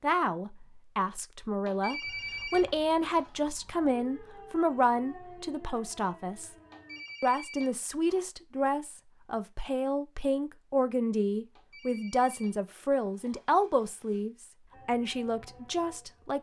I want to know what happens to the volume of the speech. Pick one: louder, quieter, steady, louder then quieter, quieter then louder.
steady.